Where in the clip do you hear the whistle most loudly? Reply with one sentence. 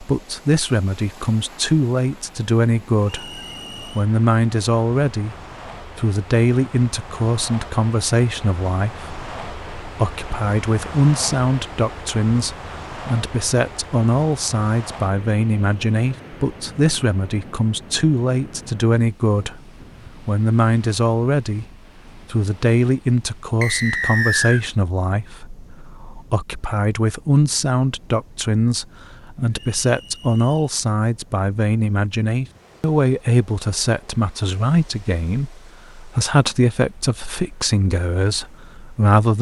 The volume of the whistle peaks at 24 seconds.